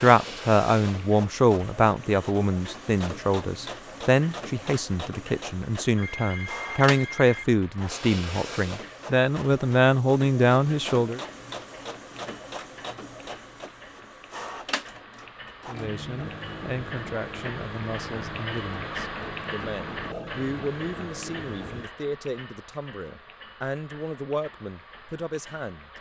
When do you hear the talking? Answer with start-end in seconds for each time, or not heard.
0.0-11.2, 15.7-25.9.